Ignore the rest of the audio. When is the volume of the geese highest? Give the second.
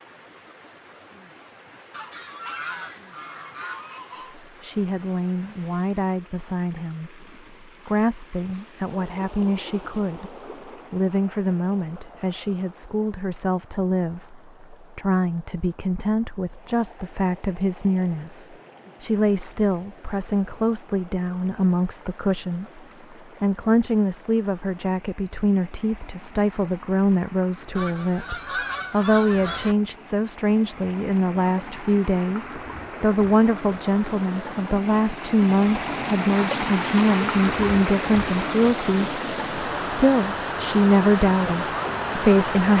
29 s.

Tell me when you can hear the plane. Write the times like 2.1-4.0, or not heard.
not heard.